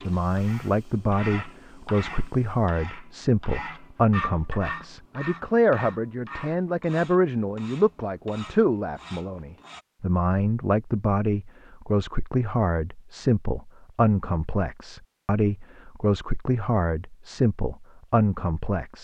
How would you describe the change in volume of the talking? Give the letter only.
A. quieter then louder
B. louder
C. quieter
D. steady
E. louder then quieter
D.